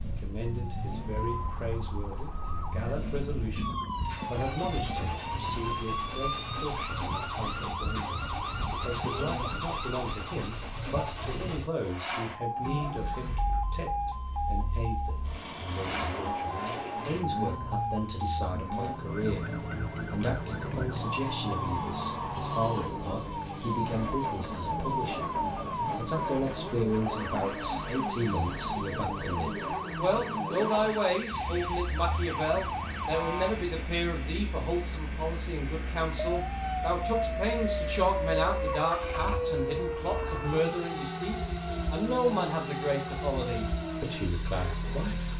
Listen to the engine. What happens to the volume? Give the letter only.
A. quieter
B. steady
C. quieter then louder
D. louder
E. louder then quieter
B.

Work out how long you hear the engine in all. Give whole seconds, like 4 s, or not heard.
45 s.